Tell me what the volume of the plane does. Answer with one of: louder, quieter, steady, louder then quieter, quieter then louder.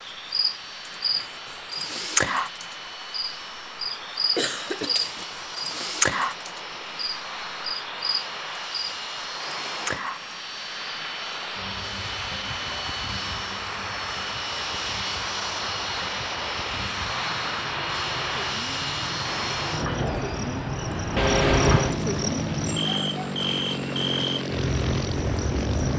louder.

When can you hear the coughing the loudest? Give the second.
22 s.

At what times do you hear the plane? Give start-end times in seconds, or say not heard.
0.0-25.9.